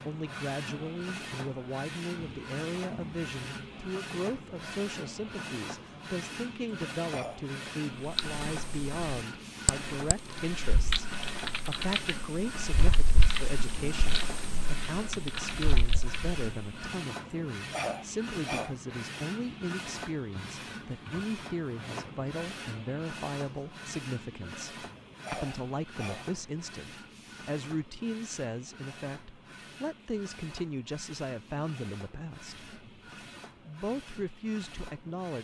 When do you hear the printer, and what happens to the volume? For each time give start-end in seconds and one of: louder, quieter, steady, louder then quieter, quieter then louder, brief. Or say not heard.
0.0-35.3 quieter.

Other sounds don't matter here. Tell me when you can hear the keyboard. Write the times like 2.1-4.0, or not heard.
8.0-16.8.